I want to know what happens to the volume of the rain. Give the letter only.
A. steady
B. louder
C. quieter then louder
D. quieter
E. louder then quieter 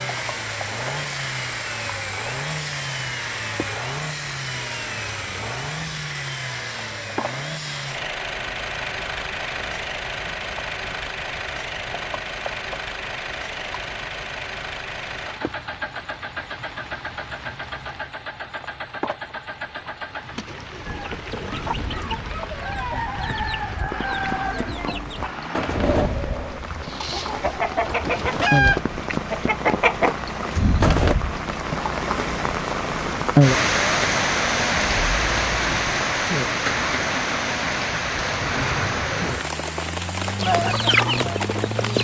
B.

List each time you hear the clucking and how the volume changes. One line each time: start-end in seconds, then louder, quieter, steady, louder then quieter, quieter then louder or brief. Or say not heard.
20.9-31.1 louder
40.4-41.9 brief.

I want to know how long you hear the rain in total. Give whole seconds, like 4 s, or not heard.
42 s.